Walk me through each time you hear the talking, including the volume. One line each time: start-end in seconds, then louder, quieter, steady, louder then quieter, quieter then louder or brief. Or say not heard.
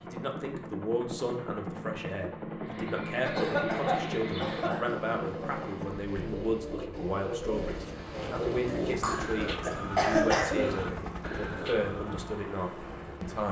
0.0-13.4 steady.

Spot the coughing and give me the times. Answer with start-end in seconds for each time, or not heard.
3.2-4.8, 8.7-10.5.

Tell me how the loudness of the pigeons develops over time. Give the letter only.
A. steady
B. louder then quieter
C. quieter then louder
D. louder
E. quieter
D.